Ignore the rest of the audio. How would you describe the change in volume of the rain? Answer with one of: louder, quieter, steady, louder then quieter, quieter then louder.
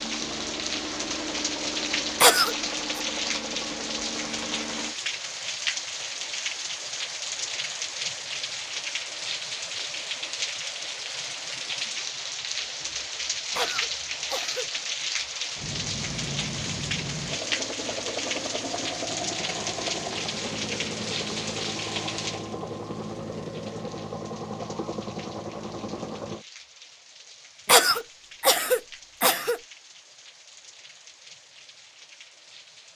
quieter.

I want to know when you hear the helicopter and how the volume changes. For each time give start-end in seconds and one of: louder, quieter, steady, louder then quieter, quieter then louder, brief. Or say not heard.
0.0-5.0 steady
15.6-26.4 steady.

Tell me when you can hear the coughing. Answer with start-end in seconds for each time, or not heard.
2.2-3.0, 13.6-14.7, 27.6-29.6.